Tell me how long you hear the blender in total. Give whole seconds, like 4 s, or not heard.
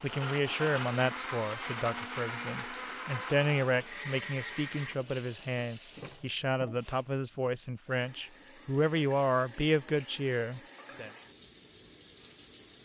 5 s.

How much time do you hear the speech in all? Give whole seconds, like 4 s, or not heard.
11 s.